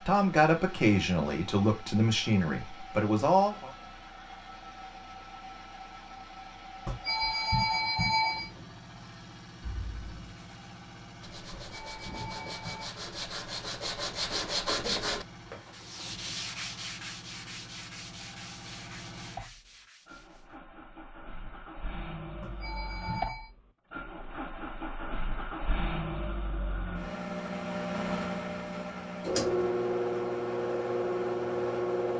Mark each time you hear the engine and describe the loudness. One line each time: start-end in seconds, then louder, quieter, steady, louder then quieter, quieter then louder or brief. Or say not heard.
0.0-32.1 louder.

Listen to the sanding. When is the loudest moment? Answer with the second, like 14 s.
15 s.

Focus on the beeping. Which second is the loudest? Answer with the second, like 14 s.
8 s.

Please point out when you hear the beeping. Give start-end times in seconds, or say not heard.
6.8-8.5, 11.5-12.9, 22.4-23.5.